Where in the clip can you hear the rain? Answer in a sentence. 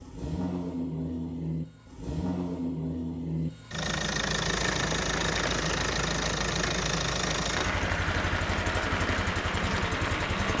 You can hear the rain from 4.5 to 10.5 s.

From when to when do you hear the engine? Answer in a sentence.
The engine can be heard from 0.0 to 10.5 s.